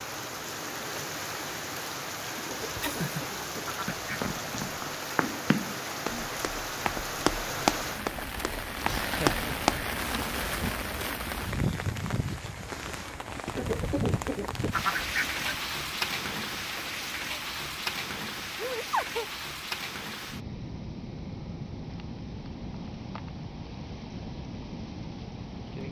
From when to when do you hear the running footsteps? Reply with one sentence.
The running footsteps can be heard from 3.9 to 10.9 s.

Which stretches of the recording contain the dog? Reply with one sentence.
The dog can't be heard in this clip.